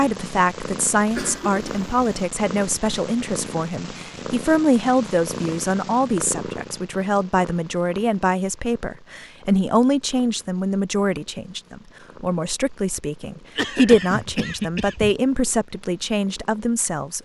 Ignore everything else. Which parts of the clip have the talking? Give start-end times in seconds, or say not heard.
0.0-17.2.